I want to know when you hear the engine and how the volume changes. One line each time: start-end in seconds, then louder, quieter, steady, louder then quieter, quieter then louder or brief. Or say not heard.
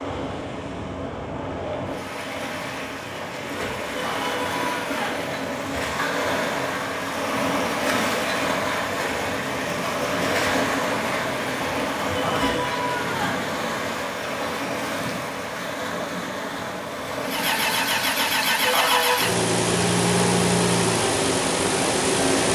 17.2-22.5 steady.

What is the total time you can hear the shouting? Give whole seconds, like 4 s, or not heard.
3 s.